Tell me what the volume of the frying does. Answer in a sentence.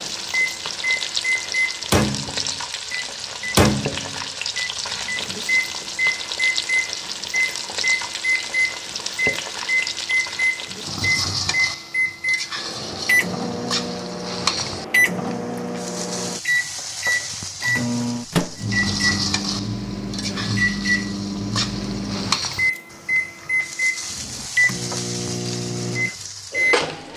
The loudness of the frying stays about the same.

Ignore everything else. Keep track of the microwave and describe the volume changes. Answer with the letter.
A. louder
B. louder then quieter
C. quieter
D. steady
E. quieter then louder
D.